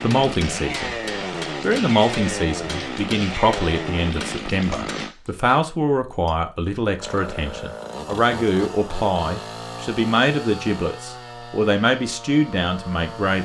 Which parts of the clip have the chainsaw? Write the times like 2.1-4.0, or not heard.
0.0-5.2, 7.0-13.3.